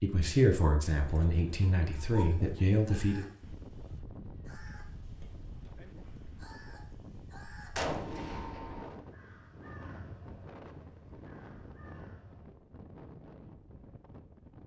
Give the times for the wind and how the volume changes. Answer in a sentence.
You can hear the wind from 3.4 to 14.6 s, at a steady volume.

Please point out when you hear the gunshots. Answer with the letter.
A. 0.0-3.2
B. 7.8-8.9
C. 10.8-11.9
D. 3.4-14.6
B.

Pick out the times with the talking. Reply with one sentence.
The talking can be heard from 0.0 to 3.2 s.